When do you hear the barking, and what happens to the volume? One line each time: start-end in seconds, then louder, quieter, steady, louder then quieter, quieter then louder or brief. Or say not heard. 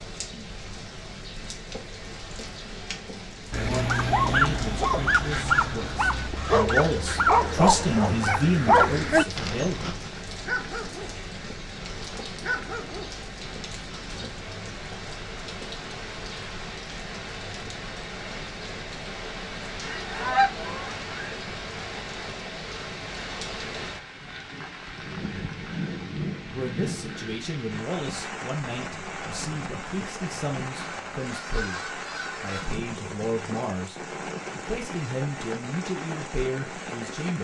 3.5-14.3 quieter.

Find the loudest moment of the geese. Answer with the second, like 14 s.
20 s.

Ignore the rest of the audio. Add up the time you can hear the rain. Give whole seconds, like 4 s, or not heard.
37 s.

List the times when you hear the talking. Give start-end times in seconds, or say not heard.
3.6-9.9, 26.5-31.8, 32.4-37.3.